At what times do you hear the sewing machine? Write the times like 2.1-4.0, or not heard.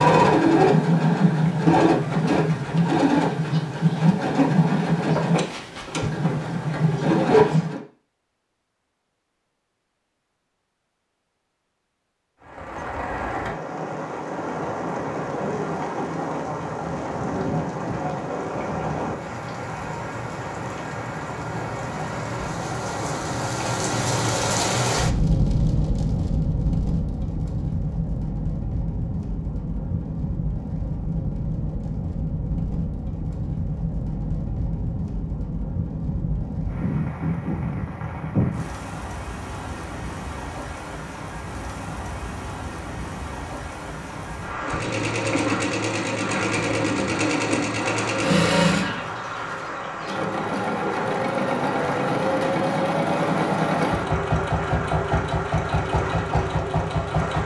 0.0-7.8, 44.6-57.4.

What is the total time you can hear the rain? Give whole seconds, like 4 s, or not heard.
45 s.